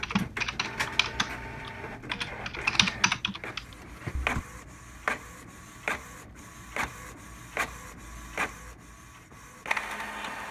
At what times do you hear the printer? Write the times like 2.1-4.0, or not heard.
0.0-10.4.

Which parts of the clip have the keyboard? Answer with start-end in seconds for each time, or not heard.
0.0-4.5.